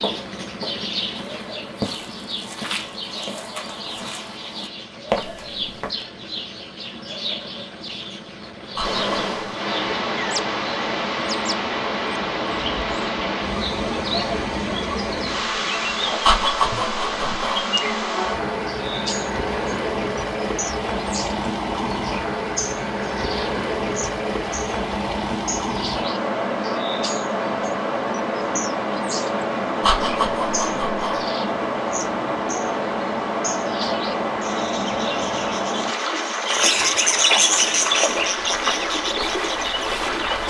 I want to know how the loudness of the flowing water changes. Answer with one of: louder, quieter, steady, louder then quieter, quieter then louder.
steady.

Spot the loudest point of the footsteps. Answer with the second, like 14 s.
5 s.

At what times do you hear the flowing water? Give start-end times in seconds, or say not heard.
8.8-40.4.